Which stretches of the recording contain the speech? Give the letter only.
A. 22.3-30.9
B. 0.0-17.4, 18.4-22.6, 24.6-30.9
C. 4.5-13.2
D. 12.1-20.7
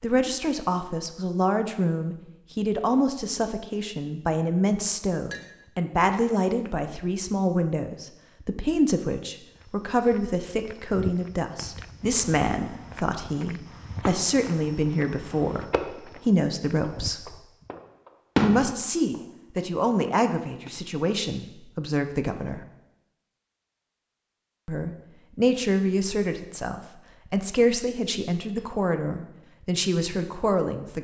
B.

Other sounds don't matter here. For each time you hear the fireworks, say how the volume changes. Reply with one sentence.
The fireworks can be heard from 12.1 to 20.7 s, getting louder then quieter.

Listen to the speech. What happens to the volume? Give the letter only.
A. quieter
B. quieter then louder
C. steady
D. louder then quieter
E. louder
C.